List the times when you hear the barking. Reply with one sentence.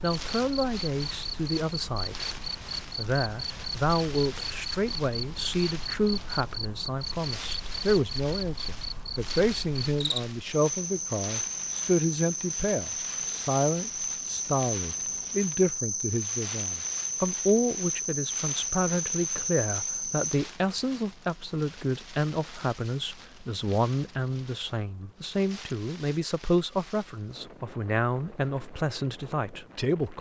You can't hear the barking here.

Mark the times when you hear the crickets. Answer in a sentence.
The crickets can be heard from 0.0 to 20.4 s.